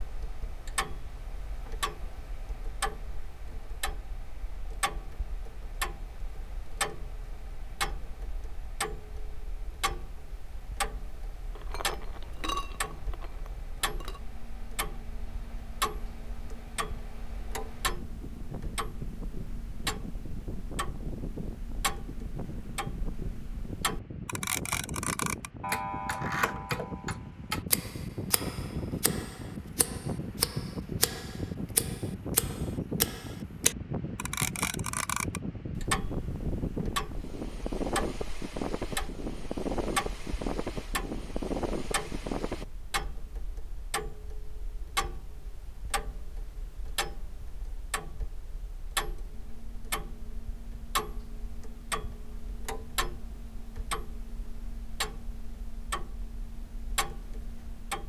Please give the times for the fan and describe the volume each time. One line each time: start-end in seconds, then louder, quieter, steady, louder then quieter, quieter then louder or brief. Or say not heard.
0.0-42.6 louder.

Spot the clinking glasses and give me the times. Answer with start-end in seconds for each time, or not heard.
11.6-14.2.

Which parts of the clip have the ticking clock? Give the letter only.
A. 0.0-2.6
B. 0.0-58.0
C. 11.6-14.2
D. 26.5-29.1
B.